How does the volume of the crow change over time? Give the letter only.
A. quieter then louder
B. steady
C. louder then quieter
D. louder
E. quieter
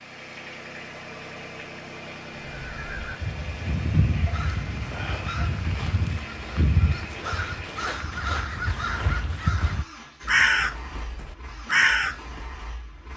D.